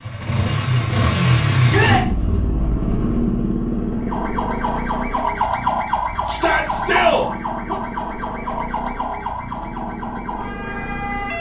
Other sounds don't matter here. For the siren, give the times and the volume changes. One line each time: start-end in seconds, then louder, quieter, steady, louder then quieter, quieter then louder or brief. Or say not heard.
4.0-11.3 quieter.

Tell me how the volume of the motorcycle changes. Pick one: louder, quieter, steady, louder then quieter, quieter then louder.
quieter.